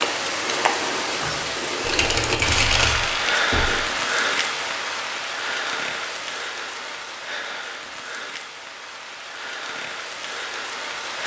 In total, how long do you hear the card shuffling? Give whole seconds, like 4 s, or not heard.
2 s.